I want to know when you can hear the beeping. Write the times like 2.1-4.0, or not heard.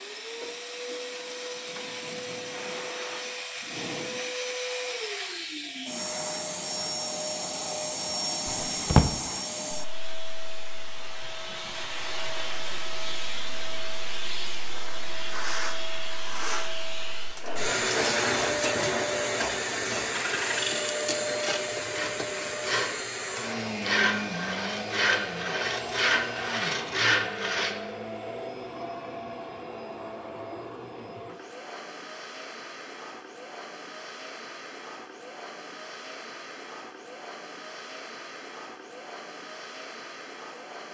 not heard.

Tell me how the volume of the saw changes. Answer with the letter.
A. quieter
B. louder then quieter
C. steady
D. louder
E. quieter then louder
D.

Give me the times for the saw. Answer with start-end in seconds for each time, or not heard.
17.4-27.8.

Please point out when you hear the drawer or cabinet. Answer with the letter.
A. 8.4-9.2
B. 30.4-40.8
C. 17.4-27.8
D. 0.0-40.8
A.